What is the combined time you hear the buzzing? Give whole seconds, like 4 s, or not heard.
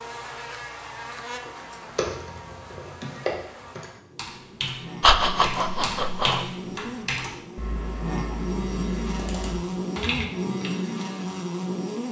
12 s.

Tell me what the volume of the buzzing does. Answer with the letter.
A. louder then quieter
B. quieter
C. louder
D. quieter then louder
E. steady
D.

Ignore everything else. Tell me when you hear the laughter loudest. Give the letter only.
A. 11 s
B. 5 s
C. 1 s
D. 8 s
B.